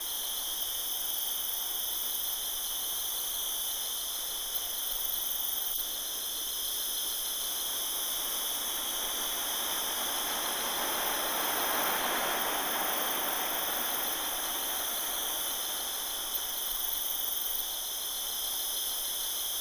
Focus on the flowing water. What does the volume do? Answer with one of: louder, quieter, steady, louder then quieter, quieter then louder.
louder then quieter.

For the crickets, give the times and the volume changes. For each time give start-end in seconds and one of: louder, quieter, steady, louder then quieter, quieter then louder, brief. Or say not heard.
0.0-19.5 steady.